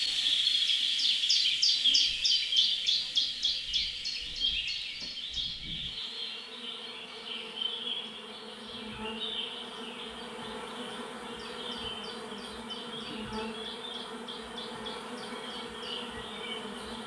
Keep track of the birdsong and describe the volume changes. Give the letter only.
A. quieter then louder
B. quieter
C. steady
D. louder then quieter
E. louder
B.